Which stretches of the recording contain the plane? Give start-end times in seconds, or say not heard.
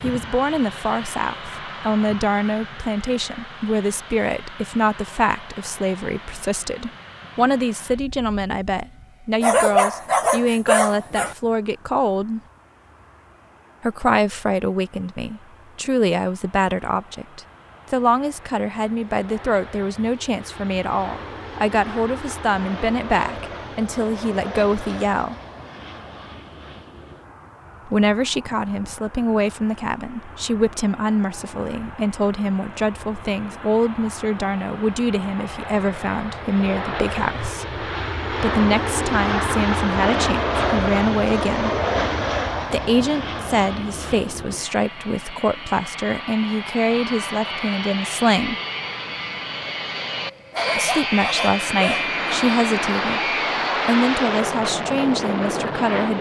0.0-56.1.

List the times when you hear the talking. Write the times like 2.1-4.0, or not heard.
0.0-12.4, 13.8-25.4, 27.9-41.8, 42.7-48.5, 50.8-56.1.